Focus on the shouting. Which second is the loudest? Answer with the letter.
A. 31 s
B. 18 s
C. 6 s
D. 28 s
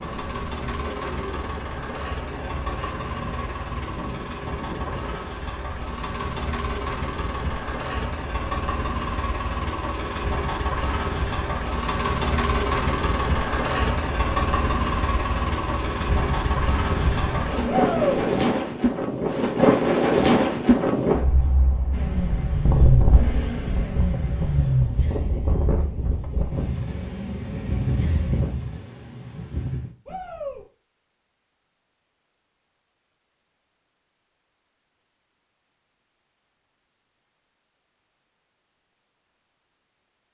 B.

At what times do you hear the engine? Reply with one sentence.
The engine can be heard from 0.0 to 18.4 s and from 21.9 to 28.4 s.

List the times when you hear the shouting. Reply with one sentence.
You can hear the shouting from 17.6 to 18.2 s and from 30.1 to 30.6 s.